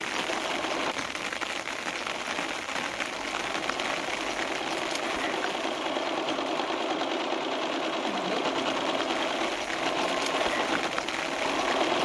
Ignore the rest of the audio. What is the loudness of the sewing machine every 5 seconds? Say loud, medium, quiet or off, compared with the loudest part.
medium, loud, loud.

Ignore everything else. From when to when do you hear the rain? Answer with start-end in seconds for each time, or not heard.
0.0-12.0.